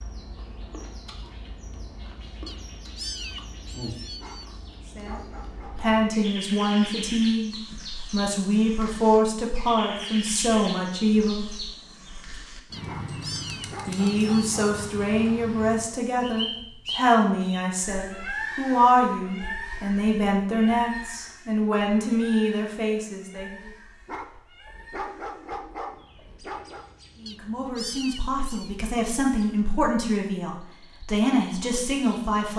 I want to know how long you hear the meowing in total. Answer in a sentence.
The meowing can be heard for 5 seconds in total.